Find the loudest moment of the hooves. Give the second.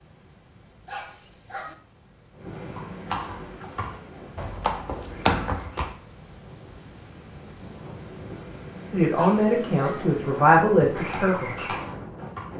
5 s.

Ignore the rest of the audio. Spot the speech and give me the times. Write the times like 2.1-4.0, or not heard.
8.9-11.7.